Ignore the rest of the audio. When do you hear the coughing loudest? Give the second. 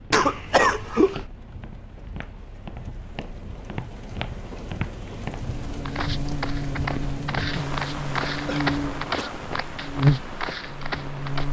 1 s.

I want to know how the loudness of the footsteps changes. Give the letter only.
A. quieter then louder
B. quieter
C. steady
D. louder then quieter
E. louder
E.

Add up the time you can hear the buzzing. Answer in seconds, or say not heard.
6 s.